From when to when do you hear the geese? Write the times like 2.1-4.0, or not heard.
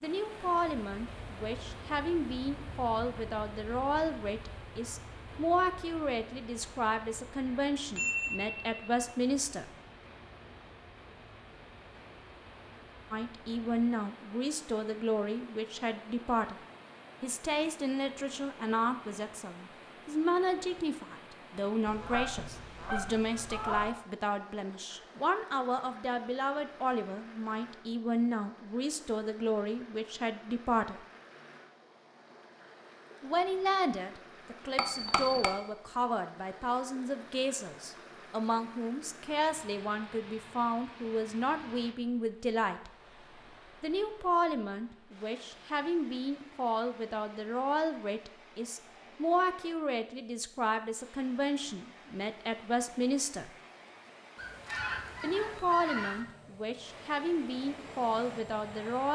21.9-23.9, 54.4-56.2.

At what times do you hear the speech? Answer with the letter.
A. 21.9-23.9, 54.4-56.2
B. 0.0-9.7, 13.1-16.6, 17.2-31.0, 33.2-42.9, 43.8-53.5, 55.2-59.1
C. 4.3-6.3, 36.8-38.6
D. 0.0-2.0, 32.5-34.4
B.